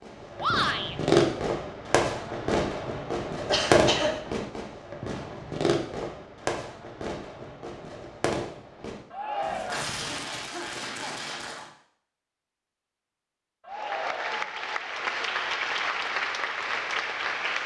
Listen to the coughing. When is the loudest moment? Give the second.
4 s.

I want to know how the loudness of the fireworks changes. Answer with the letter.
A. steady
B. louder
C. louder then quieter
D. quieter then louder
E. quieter
E.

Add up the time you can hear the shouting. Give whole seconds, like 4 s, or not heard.
2 s.